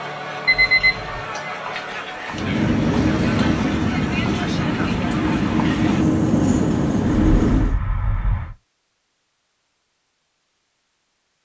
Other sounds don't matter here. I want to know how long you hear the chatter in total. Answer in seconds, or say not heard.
6 s.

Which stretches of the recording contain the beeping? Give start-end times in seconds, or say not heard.
0.5-1.2, 7.0-8.6.